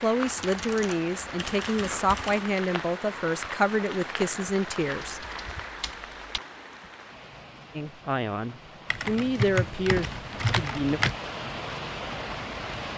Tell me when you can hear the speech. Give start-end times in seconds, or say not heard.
0.0-5.2, 7.8-11.0.